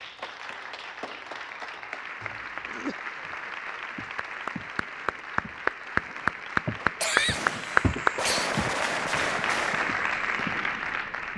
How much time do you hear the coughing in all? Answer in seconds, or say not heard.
2 s.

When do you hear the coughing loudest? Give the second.
7 s.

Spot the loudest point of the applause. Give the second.
8 s.